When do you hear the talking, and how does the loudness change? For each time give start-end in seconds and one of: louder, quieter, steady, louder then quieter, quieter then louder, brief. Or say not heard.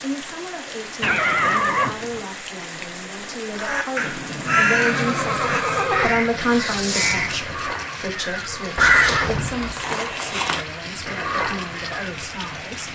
0.0-12.9 louder then quieter.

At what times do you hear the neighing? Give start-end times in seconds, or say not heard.
1.0-2.2, 4.5-6.1, 8.8-9.8.